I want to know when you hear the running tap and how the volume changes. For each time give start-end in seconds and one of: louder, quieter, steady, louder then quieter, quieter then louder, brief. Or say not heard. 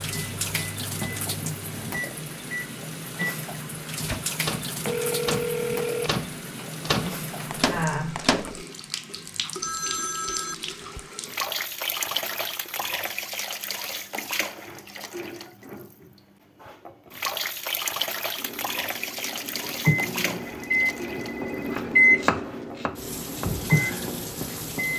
0.0-24.9 steady.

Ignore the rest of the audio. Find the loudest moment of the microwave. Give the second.
22 s.